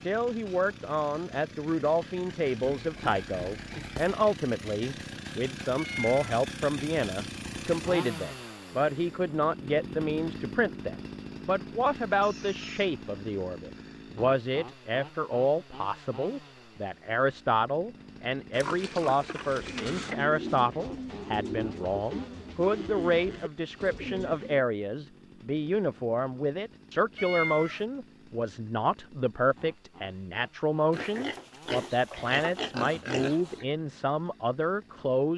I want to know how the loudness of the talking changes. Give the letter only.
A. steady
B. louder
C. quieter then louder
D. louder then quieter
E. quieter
A.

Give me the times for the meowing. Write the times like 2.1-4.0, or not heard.
5.8-6.3, 27.1-27.8.